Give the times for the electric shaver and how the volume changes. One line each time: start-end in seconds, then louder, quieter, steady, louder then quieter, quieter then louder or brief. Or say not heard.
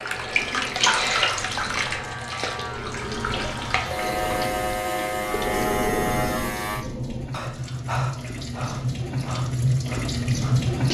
0.0-6.8 louder.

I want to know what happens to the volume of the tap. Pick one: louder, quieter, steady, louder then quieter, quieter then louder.
quieter then louder.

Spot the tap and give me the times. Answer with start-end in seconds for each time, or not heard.
0.0-10.8.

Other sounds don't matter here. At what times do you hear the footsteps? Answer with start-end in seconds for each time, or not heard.
not heard.